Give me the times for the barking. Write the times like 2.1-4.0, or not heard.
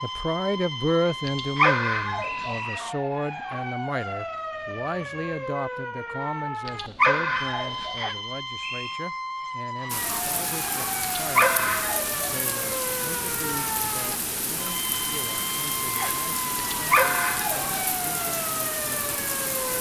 1.2-2.5, 6.7-8.0, 11.0-12.2, 16.7-17.7.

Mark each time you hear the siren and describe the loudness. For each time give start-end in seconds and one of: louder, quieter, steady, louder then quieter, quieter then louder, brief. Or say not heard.
0.0-19.7 steady.